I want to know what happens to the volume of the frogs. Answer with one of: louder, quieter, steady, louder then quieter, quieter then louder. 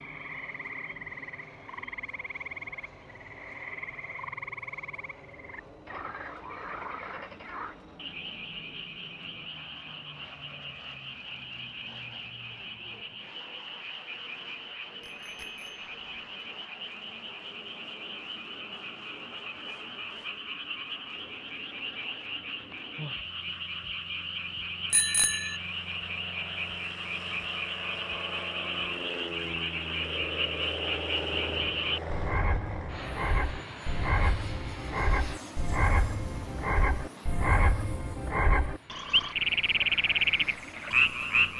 louder.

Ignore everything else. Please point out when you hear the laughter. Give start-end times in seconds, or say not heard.
not heard.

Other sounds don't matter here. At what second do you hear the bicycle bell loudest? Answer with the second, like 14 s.
25 s.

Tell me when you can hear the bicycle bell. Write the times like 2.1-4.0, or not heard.
15.0-15.9, 24.9-25.6.